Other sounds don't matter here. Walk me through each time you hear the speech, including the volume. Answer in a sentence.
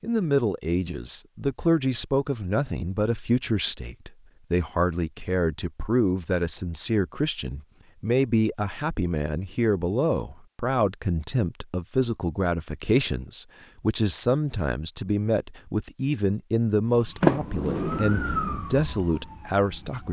The speech can be heard from 0.0 to 20.0 s, at a steady volume.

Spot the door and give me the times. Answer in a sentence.
The door can be heard from 17.2 to 18.6 s.